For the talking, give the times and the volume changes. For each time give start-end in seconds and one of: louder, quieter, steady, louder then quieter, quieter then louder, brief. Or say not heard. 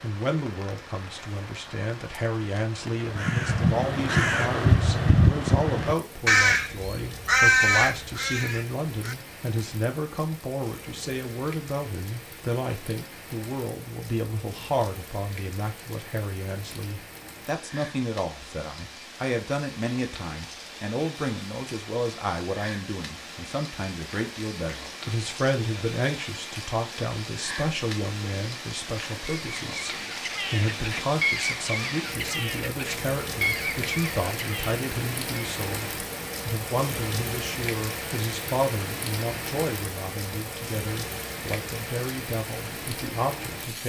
0.0-43.8 steady.